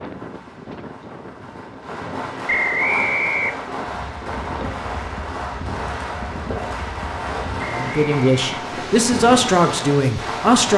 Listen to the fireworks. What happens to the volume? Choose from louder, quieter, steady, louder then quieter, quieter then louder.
louder.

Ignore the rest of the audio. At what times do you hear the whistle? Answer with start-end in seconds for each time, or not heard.
2.5-3.7, 7.6-8.4.